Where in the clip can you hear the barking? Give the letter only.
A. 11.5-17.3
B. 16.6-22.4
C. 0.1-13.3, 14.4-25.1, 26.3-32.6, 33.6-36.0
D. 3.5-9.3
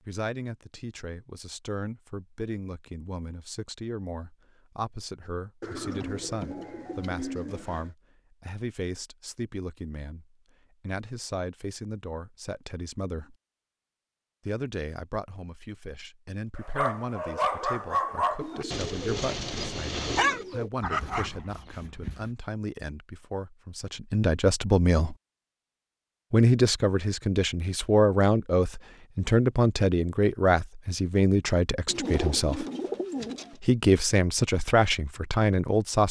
B.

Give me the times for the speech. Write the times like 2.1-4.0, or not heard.
0.1-13.3, 14.4-25.1, 26.3-32.6, 33.6-36.0.